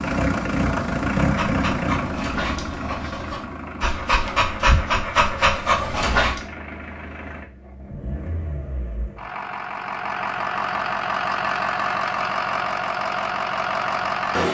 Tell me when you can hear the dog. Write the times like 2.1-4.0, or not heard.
1.1-6.4.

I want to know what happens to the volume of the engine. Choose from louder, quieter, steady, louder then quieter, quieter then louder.
quieter then louder.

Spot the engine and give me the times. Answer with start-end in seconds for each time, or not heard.
0.0-14.4.